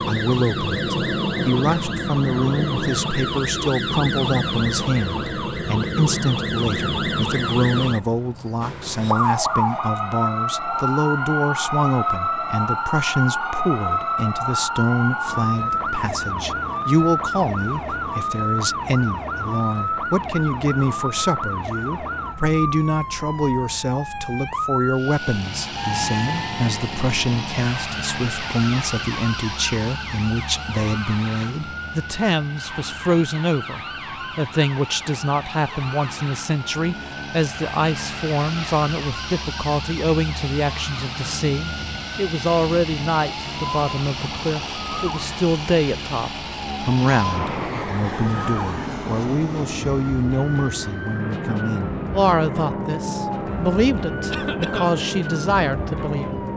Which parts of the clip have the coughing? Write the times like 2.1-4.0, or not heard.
54.3-55.0.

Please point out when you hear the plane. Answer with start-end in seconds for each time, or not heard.
24.9-56.5.